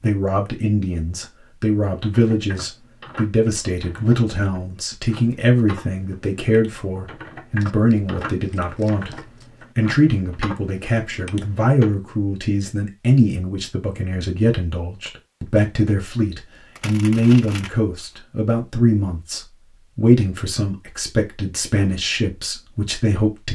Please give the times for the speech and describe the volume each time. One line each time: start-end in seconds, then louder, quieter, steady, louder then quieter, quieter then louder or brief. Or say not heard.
0.0-23.5 steady.